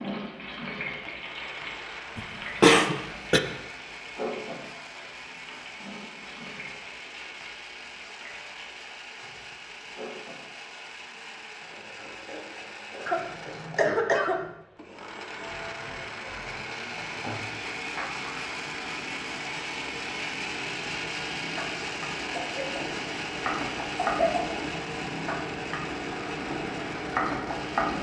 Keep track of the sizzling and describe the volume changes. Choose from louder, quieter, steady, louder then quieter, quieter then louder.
quieter then louder.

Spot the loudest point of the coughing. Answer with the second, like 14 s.
3 s.